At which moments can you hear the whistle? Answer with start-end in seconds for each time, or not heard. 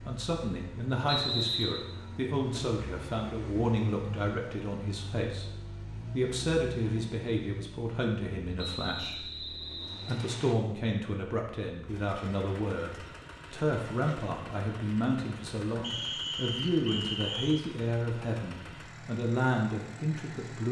1.1-1.9, 8.6-10.6, 15.8-17.6.